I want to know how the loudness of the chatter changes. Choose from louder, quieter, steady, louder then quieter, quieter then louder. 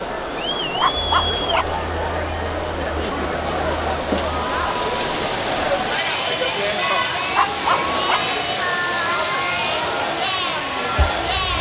steady.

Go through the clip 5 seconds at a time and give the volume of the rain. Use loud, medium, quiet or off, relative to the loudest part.
medium, loud, loud.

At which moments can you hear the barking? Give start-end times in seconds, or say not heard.
0.8-1.8, 7.3-8.3.